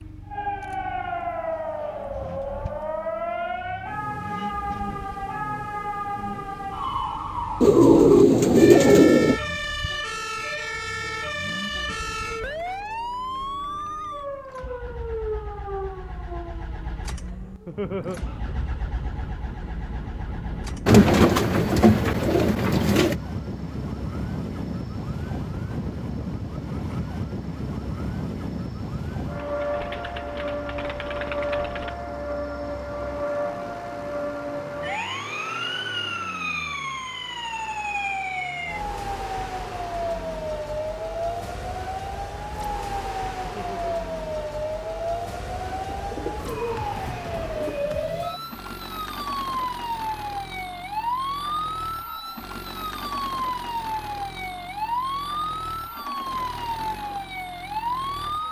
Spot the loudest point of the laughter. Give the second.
18 s.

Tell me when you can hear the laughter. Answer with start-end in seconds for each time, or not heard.
17.6-18.2, 43.5-44.0.